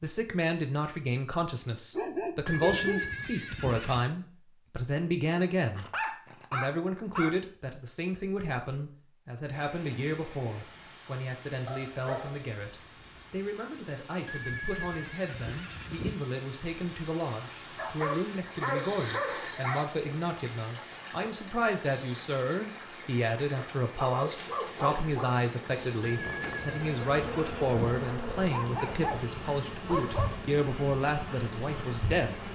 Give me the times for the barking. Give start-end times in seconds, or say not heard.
1.9-3.1, 5.8-7.3, 11.7-13.3, 17.8-19.9, 23.6-25.4, 28.4-30.4.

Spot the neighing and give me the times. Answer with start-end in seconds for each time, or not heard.
2.5-4.0, 14.2-16.2, 26.0-27.8.